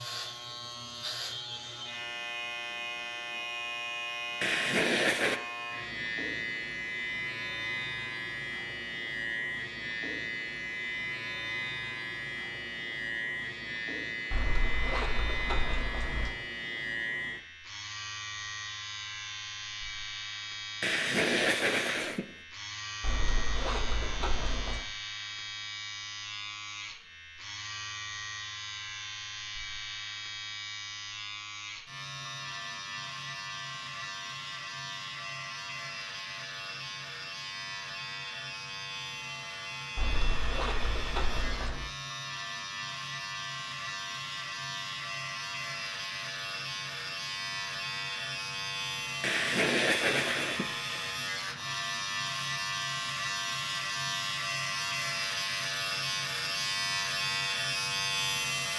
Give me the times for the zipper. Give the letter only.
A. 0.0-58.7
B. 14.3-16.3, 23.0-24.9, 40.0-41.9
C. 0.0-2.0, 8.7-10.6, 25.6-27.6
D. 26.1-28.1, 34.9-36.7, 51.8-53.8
B.